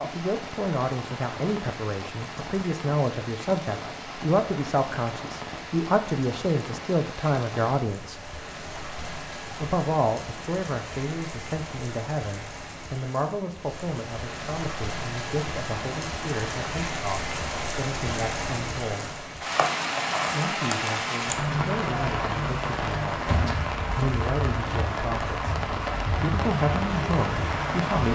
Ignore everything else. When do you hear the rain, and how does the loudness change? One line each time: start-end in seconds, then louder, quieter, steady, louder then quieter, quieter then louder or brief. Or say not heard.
0.0-28.1 louder.